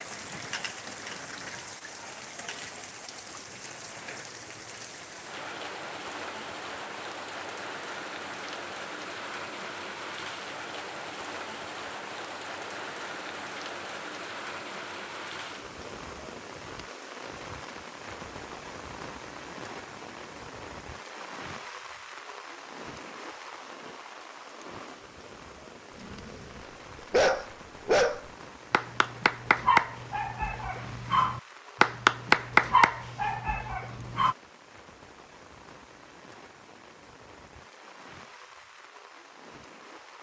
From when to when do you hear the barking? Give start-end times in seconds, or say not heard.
25.9-34.4.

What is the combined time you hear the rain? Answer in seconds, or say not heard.
40 s.